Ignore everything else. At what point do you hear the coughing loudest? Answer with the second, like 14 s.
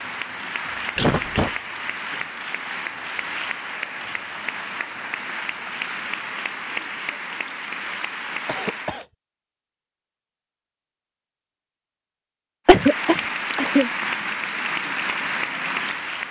13 s.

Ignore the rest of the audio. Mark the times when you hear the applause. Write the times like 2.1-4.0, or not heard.
0.0-9.1, 12.7-16.2.